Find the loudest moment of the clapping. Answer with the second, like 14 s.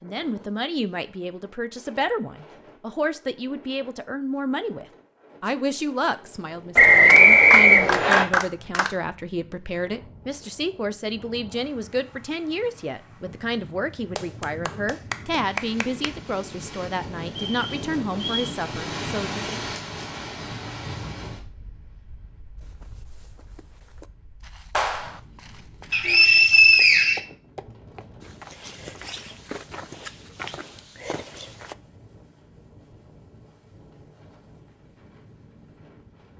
8 s.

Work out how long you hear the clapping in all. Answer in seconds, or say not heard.
4 s.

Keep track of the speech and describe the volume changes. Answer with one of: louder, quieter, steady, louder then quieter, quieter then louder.
steady.